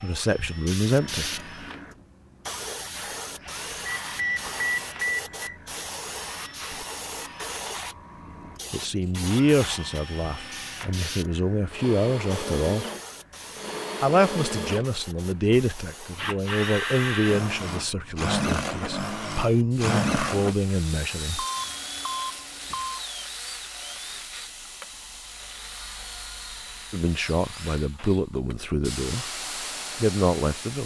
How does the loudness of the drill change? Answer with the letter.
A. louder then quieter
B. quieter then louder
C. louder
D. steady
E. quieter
A.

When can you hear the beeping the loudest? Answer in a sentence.
The loudest moment of the beeping is at 5 seconds.